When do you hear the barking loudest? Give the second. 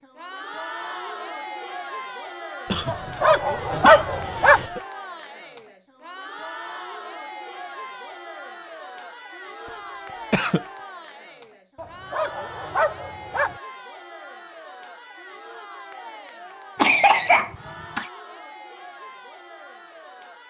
4 s.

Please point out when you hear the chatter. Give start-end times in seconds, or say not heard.
0.0-20.4.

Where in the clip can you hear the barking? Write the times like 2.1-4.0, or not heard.
2.9-4.7, 11.8-13.6.